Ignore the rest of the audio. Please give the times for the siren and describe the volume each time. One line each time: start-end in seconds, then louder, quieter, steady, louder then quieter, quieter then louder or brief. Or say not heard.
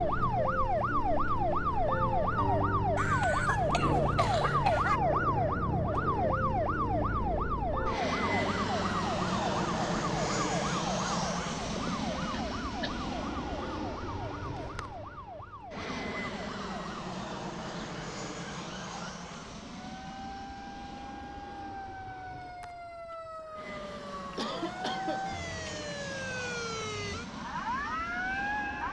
0.0-28.8 quieter then louder.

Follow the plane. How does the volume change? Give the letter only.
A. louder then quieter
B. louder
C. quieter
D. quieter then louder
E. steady
C.